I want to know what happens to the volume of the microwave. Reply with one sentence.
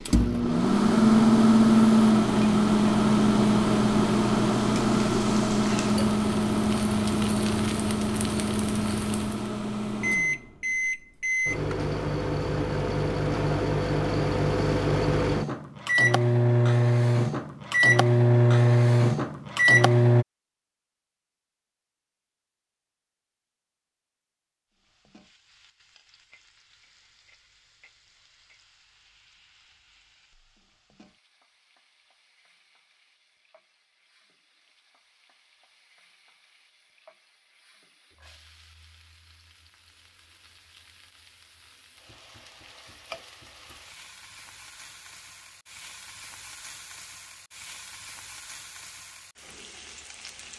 The loudness of the microwave goes down, then up.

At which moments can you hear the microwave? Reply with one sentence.
The microwave can be heard from 0.0 to 20.2 s.